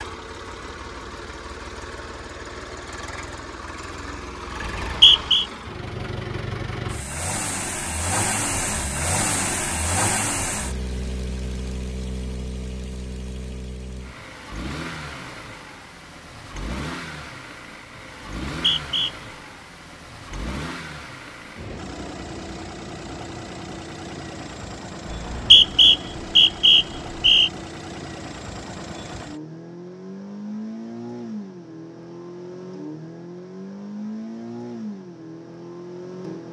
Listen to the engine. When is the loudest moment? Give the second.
10 s.